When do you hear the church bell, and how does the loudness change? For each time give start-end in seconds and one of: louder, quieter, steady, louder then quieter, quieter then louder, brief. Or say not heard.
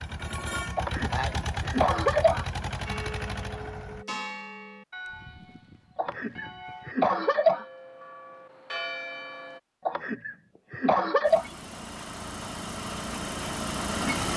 2.9-9.6 quieter then louder.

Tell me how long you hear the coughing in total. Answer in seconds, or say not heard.
5 s.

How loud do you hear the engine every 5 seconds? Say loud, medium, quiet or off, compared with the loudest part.
loud, off, loud.